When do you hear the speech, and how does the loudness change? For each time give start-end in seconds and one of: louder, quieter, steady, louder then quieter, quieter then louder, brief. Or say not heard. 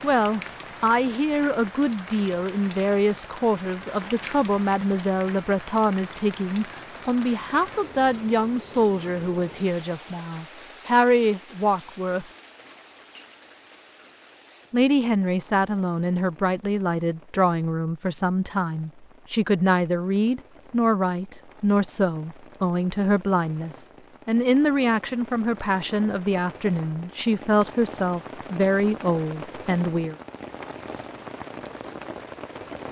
0.0-12.2 steady
14.7-30.1 steady.